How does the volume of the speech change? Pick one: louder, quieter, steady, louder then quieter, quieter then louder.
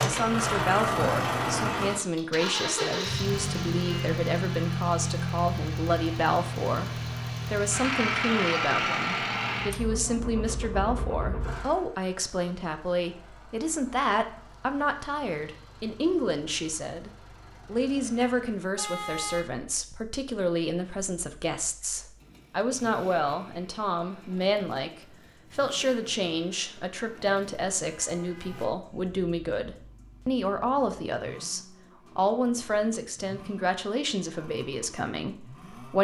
steady.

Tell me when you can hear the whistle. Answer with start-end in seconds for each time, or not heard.
not heard.